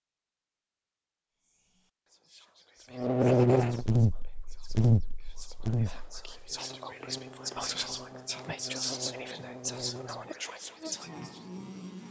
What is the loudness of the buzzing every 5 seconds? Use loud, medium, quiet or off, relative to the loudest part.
loud, quiet, quiet.